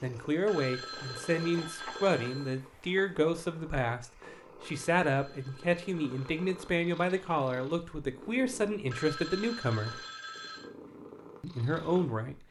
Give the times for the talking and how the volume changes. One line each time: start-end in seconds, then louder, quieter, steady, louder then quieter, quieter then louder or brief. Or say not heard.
0.0-10.0 steady
11.4-12.4 brief.